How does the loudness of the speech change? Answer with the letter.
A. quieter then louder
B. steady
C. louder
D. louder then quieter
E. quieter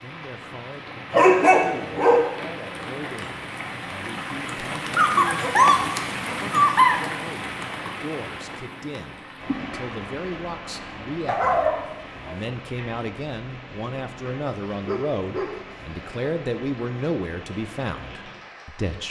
C.